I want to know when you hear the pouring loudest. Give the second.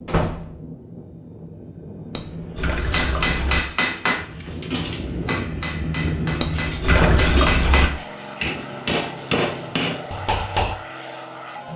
7 s.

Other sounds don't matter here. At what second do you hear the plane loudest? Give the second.
6 s.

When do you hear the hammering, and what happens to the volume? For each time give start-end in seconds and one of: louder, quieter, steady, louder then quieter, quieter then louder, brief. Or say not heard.
2.8-10.8 quieter then louder.